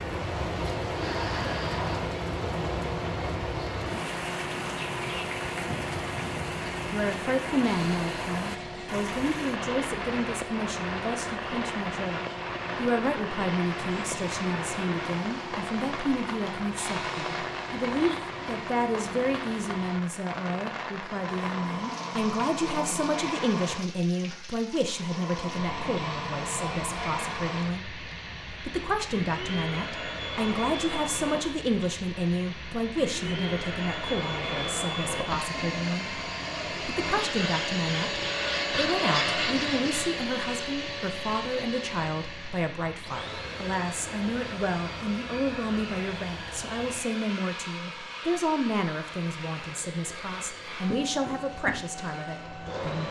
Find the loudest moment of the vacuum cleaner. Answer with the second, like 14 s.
39 s.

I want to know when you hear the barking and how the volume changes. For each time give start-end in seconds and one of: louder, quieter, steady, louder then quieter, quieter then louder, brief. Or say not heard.
not heard.